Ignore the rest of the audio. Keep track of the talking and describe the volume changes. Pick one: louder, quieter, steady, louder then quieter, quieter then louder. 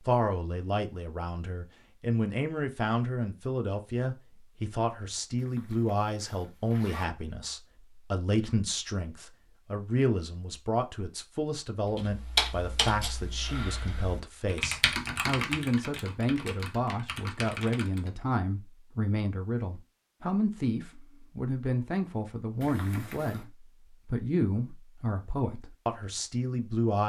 steady.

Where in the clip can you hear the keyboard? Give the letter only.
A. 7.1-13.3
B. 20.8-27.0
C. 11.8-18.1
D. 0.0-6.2
C.